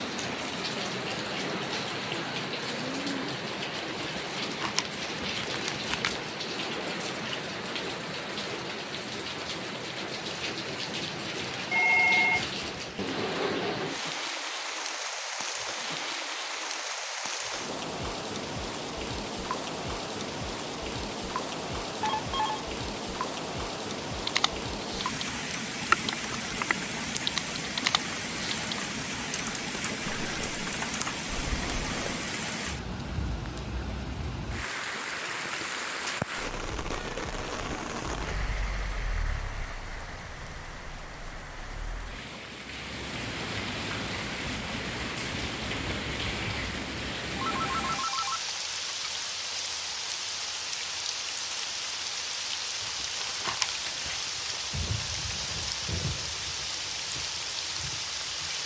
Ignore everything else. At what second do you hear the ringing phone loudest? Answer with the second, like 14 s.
12 s.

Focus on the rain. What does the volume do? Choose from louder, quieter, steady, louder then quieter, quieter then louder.
steady.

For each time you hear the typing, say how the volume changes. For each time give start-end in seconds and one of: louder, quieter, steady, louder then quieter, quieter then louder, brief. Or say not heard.
24.1-32.2 quieter.